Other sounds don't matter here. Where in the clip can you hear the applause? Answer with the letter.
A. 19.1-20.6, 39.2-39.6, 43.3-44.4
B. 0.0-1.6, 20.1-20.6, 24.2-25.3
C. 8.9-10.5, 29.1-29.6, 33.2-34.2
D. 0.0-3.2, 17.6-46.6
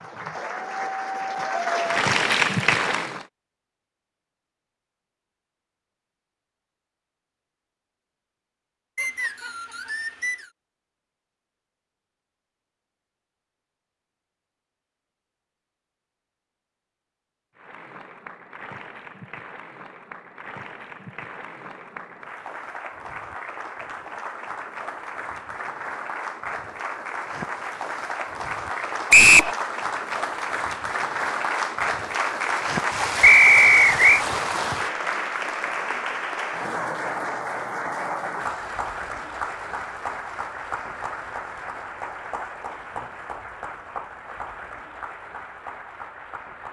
D.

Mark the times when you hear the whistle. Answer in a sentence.
The whistle can be heard from 8.9 to 10.5 s, from 29.1 to 29.6 s and from 33.2 to 34.2 s.